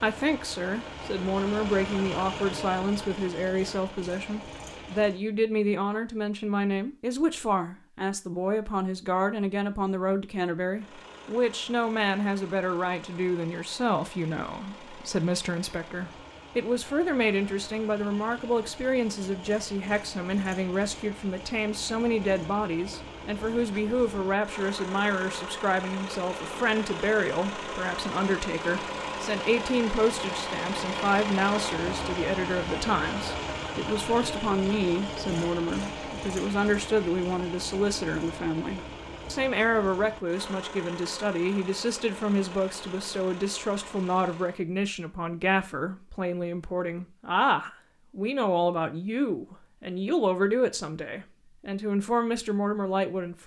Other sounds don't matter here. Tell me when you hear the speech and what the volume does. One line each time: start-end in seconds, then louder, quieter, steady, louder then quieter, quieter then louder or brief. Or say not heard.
0.0-53.4 steady.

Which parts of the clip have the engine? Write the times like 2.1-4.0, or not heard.
0.0-5.2, 10.7-44.6.